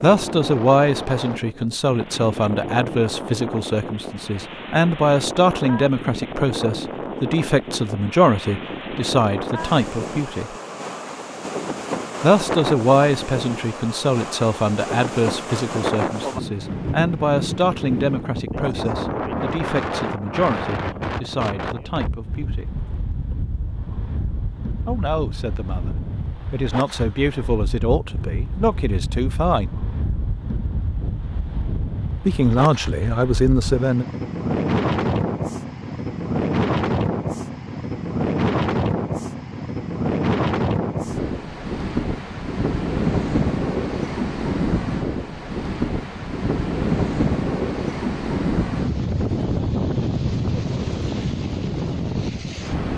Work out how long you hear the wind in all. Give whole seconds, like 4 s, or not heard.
53 s.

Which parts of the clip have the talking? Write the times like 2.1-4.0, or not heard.
0.0-10.5, 12.2-22.7, 24.9-29.8, 32.2-34.0.